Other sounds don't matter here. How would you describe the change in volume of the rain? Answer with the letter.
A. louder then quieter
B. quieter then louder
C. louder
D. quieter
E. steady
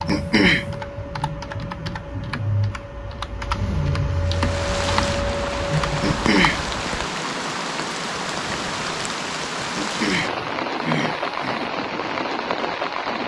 E.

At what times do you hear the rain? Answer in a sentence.
You can hear the rain from 4.2 to 13.2 s.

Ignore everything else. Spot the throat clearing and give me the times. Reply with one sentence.
You can hear the throat clearing from 0.1 to 0.7 s, from 6.0 to 6.7 s and from 9.8 to 11.6 s.